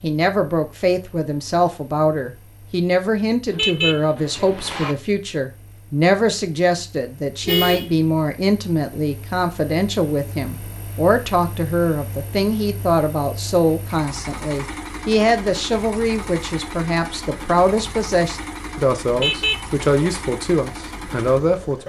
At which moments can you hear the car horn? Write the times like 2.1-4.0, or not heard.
3.5-5.0, 7.5-8.0, 19.1-20.2.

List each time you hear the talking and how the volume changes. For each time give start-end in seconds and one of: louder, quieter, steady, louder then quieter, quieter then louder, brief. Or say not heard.
0.0-21.8 steady.